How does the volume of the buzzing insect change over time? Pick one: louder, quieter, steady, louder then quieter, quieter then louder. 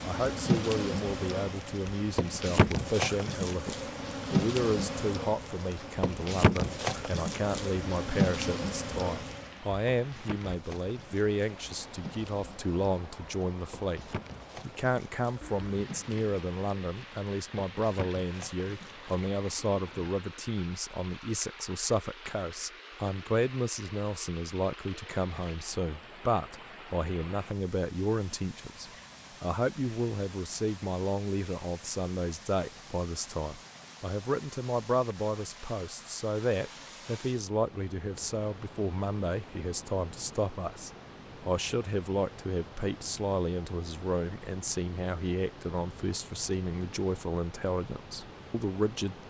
quieter.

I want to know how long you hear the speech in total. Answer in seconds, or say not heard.
49 s.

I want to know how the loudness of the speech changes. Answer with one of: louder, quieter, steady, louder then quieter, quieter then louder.
steady.